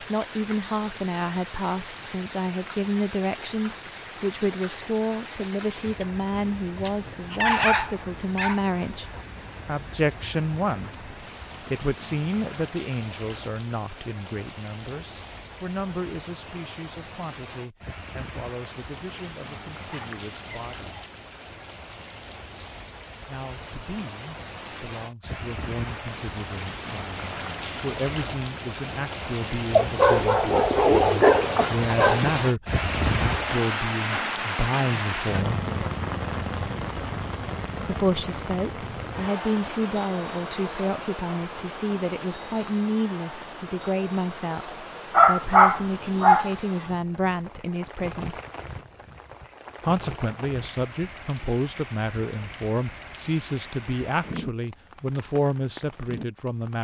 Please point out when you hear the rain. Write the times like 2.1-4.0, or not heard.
0.0-56.7.